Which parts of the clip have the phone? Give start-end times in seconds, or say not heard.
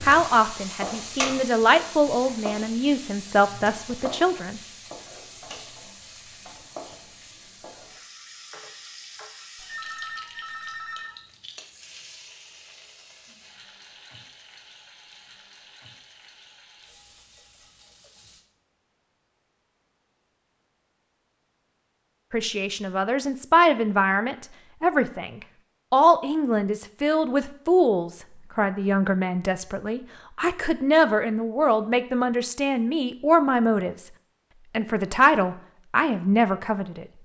9.6-11.2.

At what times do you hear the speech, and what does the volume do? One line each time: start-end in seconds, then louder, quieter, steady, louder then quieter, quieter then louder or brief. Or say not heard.
0.0-4.6 louder then quieter
22.3-34.1 steady
34.7-37.0 brief.